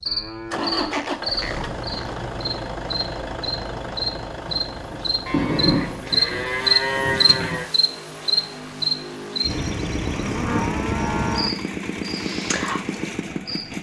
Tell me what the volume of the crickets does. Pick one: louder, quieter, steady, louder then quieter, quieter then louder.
louder then quieter.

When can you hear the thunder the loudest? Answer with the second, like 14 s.
6 s.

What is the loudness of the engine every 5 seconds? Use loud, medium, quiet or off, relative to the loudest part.
loud, medium, loud.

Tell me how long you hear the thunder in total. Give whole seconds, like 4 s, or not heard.
3 s.